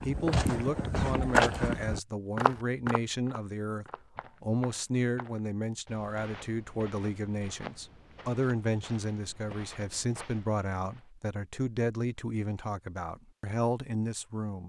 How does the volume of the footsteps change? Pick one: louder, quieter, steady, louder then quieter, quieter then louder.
quieter.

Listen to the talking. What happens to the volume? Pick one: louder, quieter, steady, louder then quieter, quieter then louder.
steady.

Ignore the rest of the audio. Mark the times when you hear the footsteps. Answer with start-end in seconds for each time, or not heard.
0.0-11.1.